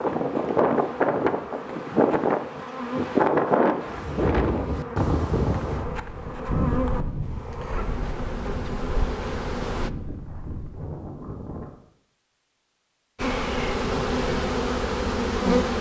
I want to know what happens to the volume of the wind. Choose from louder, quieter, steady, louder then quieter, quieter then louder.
quieter.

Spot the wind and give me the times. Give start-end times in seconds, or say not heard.
0.0-11.7.